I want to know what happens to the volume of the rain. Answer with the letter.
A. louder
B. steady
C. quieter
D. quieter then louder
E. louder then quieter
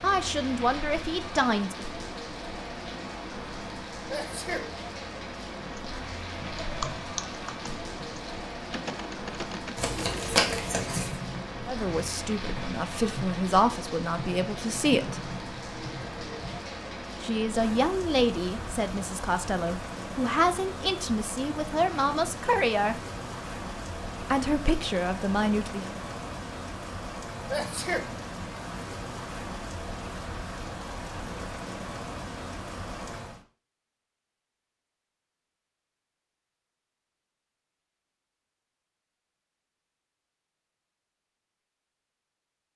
B.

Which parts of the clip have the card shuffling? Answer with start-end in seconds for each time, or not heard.
9.8-11.2.